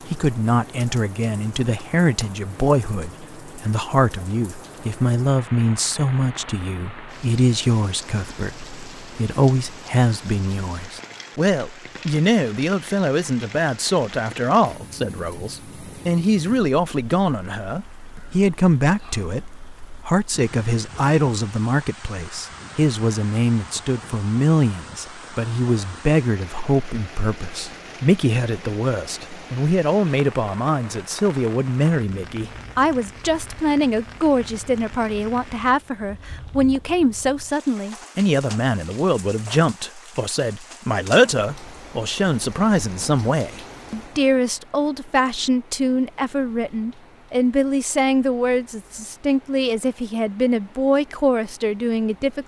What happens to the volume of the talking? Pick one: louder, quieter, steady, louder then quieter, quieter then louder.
steady.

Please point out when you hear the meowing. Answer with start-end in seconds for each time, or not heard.
not heard.